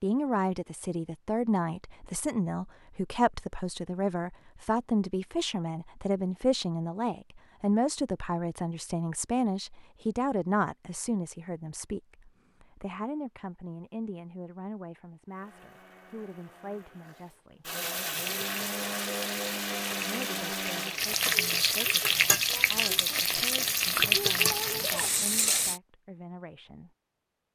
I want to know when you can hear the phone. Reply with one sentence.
The phone can't be heard in this clip.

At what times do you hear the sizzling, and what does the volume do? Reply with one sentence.
You can hear the sizzling from 18.1 to 25.8 s, getting louder.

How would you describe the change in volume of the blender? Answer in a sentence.
The volume of the blender goes up.